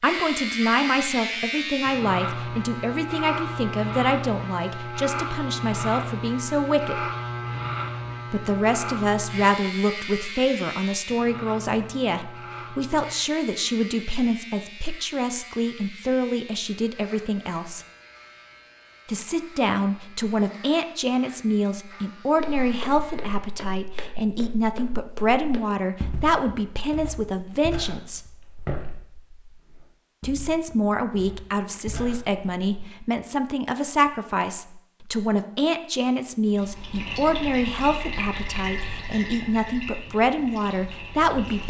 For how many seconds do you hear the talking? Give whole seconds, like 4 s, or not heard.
37 s.